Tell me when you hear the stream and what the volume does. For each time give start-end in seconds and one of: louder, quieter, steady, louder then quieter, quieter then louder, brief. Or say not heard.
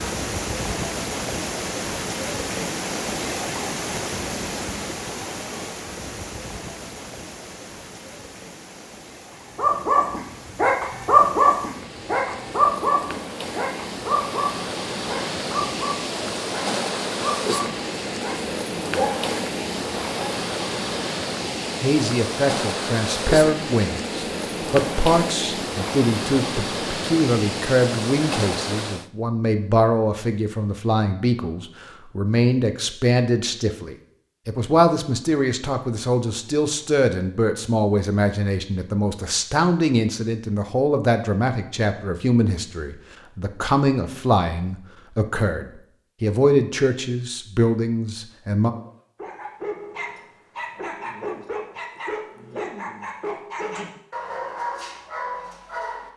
0.0-29.1 quieter then louder.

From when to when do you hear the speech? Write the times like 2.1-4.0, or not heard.
21.8-48.7.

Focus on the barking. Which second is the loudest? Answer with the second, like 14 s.
11 s.